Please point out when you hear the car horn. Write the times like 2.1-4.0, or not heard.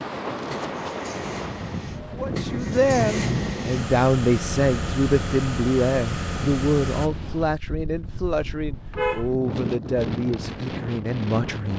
2.9-3.5, 8.1-9.3.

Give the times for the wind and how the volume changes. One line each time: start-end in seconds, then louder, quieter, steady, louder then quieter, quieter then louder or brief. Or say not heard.
0.0-11.7 quieter then louder.